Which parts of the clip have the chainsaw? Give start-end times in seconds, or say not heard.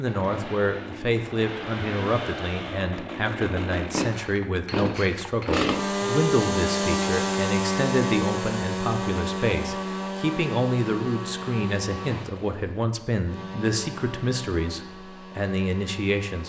0.0-16.4.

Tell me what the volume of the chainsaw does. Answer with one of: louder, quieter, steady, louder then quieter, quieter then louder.
louder then quieter.